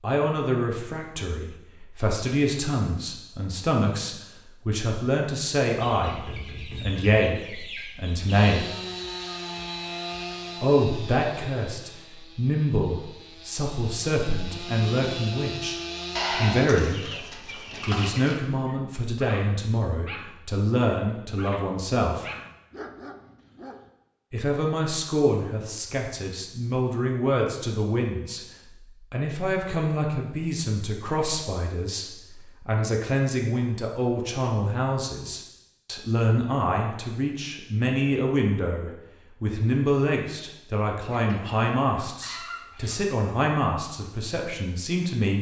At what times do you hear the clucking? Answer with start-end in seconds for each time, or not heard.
5.8-8.5, 16.1-18.4, 41.1-43.0.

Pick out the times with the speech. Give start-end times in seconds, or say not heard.
0.0-8.7, 10.6-17.2, 17.9-22.2, 24.3-28.4, 29.1-45.3.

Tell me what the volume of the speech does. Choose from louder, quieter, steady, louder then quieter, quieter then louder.
steady.